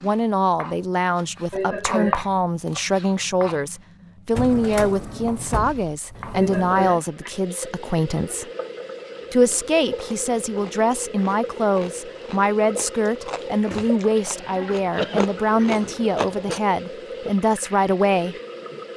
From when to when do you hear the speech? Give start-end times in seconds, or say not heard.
0.0-8.4, 9.3-18.4.